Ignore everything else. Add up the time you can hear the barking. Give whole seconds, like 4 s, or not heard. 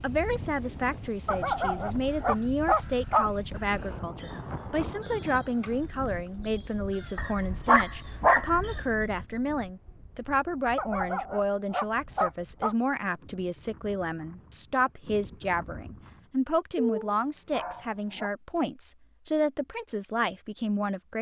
7 s.